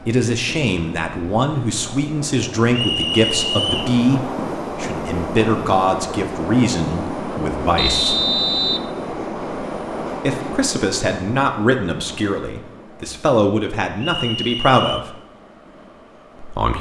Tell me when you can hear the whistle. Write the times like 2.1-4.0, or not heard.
2.7-4.0, 7.8-8.9, 13.9-15.1.